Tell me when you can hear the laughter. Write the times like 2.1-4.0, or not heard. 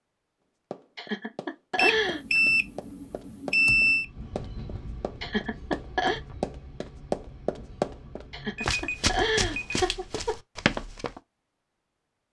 0.9-2.4, 5.2-6.2, 8.3-10.3.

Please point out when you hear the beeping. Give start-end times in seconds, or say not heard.
1.8-4.0, 8.6-9.8.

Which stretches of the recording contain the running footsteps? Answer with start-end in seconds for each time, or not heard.
0.7-11.2.